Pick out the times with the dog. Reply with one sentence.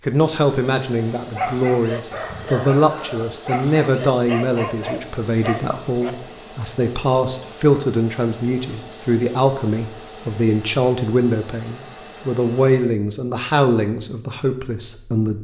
The dog can be heard from 1.1 to 6.2 s.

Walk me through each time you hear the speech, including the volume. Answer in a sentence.
The speech can be heard from 0.1 to 15.3 s, at a steady volume.